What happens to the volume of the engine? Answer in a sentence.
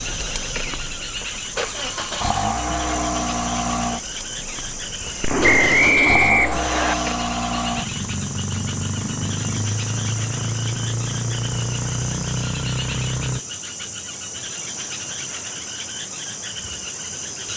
The volume of the engine stays about the same.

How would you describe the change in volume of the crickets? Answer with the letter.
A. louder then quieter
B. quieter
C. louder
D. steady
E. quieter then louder
D.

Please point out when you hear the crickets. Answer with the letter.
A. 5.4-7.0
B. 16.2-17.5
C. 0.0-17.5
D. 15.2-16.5
C.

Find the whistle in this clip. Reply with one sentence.
The whistle can be heard from 5.4 to 7.0 s.